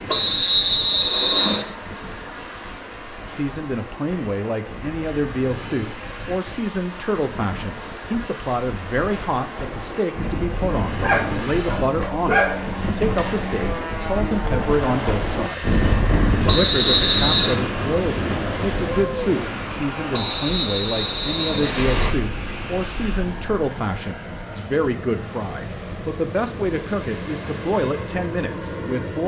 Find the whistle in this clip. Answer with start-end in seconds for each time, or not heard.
0.1-1.6, 16.4-17.6, 20.1-22.1.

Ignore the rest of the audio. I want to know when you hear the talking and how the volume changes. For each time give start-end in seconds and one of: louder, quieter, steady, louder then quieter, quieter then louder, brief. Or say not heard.
3.2-15.8 steady
16.4-29.2 steady.